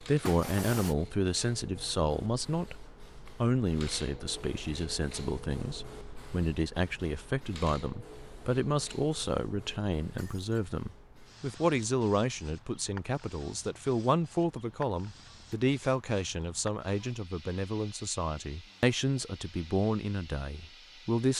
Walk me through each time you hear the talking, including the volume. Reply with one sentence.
You can hear the talking from 0.0 to 21.3 s, at a steady volume.